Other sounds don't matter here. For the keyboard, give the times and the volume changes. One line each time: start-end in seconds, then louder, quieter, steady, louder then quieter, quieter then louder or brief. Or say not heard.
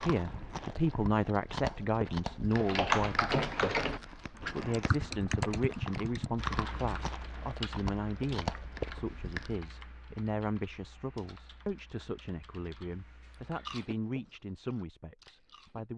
2.5-13.8 quieter.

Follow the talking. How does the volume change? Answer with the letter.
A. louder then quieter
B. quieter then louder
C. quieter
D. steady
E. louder
C.